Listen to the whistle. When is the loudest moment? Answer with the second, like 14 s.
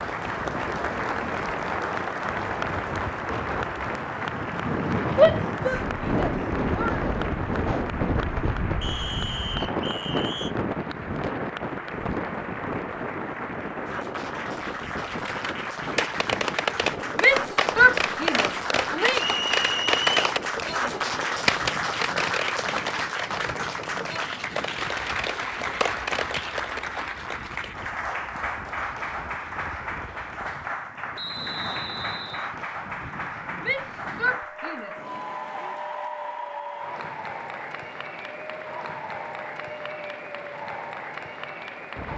20 s.